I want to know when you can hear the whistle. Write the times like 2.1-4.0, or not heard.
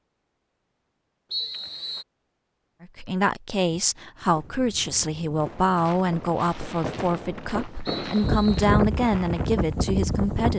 1.3-2.0, 7.8-8.7.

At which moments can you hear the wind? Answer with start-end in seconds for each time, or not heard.
4.2-10.5.